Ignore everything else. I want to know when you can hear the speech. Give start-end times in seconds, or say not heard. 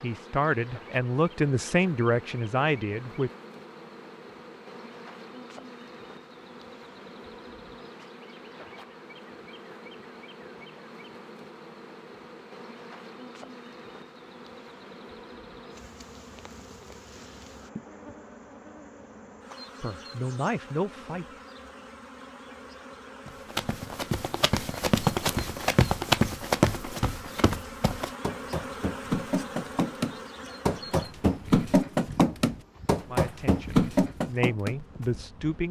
0.0-3.3, 19.8-21.2, 33.0-35.6.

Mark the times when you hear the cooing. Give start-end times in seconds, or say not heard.
not heard.